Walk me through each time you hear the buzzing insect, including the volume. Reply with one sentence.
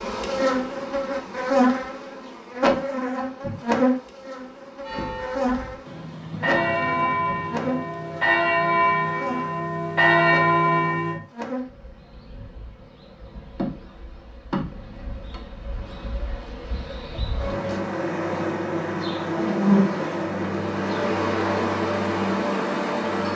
You can hear the buzzing insect from 0.0 to 23.3 s, getting quieter then louder.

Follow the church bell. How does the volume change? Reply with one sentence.
The volume of the church bell goes up.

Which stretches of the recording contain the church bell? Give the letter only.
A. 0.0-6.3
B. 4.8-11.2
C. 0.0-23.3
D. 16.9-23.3
B.